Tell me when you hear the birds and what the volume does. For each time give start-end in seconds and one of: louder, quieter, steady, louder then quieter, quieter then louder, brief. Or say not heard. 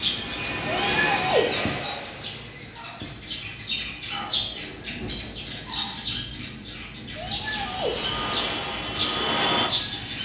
0.0-10.2 louder.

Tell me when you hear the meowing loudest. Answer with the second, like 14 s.
1 s.